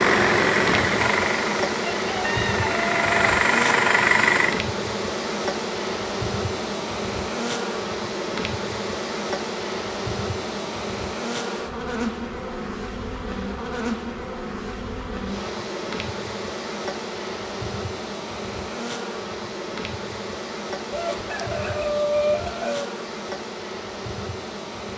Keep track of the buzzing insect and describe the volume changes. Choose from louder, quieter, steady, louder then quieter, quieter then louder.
quieter.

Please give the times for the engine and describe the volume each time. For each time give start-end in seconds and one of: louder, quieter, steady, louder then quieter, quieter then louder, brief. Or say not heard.
0.0-4.7 quieter then louder.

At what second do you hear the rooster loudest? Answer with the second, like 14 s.
22 s.